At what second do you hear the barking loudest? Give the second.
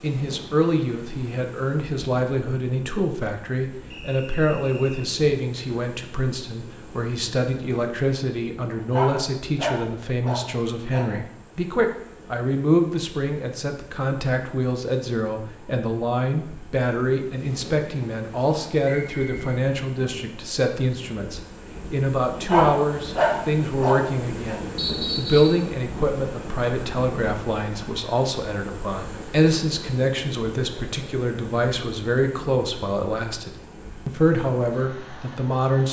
23 s.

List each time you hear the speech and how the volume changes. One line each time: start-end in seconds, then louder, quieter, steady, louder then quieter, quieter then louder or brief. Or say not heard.
0.0-35.8 steady.